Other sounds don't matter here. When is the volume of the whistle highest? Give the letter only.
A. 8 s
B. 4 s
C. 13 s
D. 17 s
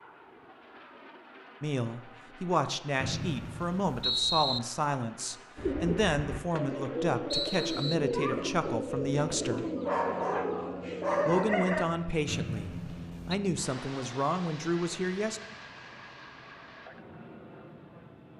B.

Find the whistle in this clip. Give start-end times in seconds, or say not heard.
3.0-4.6, 7.3-8.0, 12.2-13.3.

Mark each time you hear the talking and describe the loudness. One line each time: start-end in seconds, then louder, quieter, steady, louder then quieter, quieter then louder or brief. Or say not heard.
1.6-9.7 steady
11.2-15.4 quieter then louder.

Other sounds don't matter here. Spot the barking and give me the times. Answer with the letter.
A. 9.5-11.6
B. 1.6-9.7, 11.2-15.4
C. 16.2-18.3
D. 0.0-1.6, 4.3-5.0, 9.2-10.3
A.